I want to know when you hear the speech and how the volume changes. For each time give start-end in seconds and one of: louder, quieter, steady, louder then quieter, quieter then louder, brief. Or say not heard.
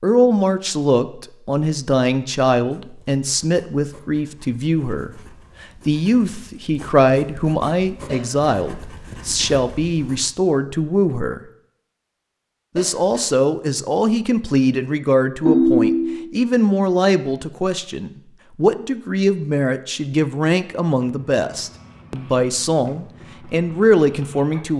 0.0-11.4 steady
12.8-24.7 steady.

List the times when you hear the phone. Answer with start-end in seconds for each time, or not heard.
15.4-16.2.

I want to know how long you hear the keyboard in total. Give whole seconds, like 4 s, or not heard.
not heard.